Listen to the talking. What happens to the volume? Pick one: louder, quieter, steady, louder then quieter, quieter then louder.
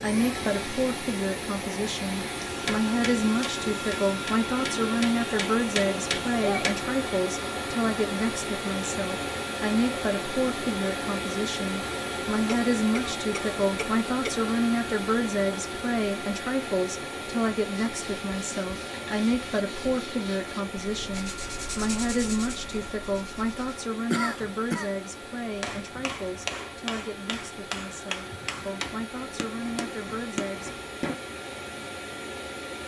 quieter.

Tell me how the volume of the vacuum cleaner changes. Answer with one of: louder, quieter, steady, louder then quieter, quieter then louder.
quieter.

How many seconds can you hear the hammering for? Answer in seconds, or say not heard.
10 s.